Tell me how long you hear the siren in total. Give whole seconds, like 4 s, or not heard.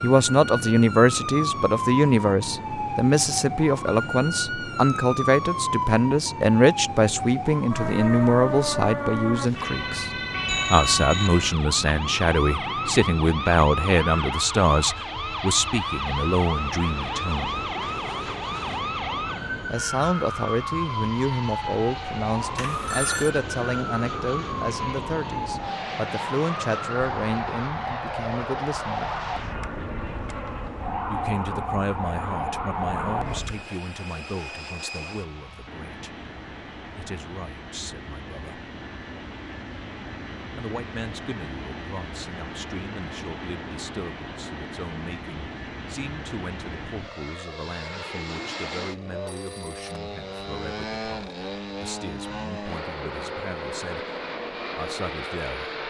34 s.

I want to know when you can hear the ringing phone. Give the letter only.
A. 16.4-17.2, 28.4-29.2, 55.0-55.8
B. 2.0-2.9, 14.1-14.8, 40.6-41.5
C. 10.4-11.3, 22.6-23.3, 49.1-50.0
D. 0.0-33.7
C.